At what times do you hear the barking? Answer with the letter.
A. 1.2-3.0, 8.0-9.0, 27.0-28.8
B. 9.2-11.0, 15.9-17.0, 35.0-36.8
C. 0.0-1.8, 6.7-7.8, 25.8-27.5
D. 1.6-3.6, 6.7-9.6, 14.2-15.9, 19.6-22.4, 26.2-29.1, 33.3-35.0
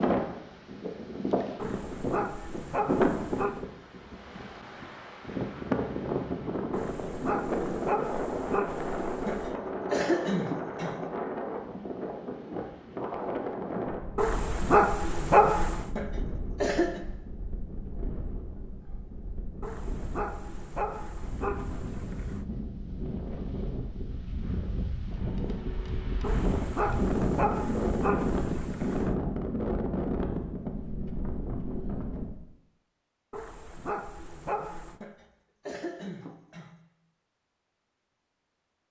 D.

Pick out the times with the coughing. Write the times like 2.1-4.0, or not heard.
9.2-11.0, 15.9-17.0, 35.0-36.8.